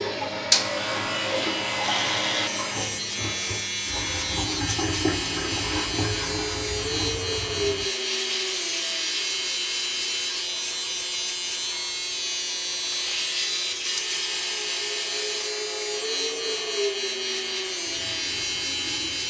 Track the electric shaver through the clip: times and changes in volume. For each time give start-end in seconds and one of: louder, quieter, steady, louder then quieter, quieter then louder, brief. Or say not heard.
0.0-19.2 steady.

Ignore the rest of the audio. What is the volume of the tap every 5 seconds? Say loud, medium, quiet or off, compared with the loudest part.
loud, loud, loud, medium.